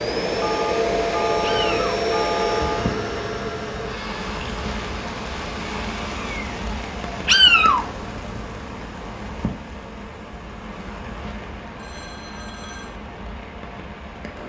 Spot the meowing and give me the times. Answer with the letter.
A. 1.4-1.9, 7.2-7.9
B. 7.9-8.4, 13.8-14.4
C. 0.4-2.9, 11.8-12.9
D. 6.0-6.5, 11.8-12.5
A.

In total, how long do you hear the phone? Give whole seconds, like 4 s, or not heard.
4 s.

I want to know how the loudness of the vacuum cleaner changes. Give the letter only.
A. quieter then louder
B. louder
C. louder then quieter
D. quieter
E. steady
D.